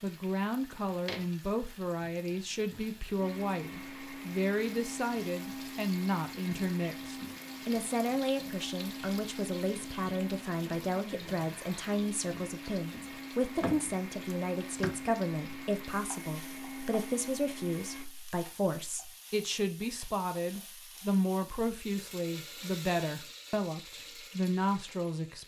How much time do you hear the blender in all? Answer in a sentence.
The blender can be heard for 15 seconds in total.